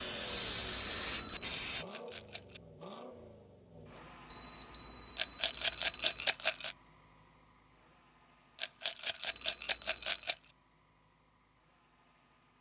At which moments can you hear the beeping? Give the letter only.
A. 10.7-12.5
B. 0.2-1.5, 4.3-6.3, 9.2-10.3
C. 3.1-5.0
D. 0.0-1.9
B.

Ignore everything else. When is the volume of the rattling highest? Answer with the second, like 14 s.
6 s.